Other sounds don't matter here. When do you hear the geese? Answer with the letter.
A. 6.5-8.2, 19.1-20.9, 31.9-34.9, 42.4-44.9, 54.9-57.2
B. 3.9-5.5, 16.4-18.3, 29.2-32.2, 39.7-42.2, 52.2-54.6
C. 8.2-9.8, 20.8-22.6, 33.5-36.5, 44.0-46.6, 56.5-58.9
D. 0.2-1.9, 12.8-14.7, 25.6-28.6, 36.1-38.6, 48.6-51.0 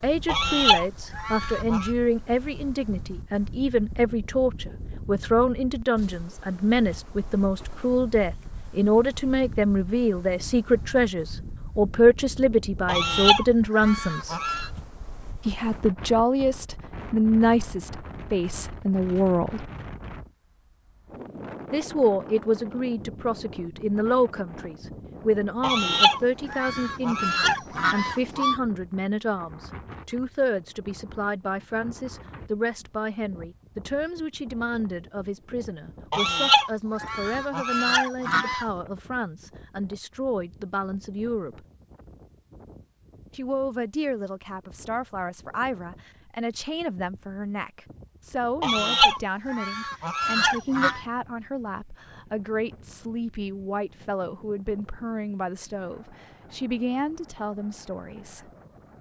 D.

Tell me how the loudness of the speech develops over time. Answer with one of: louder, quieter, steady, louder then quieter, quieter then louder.
quieter.